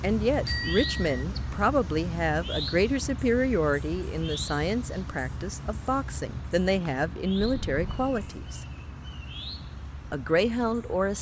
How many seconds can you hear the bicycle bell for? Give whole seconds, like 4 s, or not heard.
2 s.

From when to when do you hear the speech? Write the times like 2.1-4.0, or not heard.
0.0-8.6, 10.1-11.1.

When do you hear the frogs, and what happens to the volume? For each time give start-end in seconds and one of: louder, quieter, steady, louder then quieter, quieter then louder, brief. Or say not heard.
not heard.